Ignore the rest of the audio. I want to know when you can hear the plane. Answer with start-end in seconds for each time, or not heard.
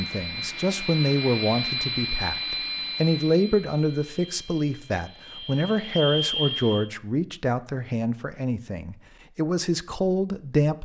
0.0-6.9.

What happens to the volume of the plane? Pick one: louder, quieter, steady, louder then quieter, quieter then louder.
quieter then louder.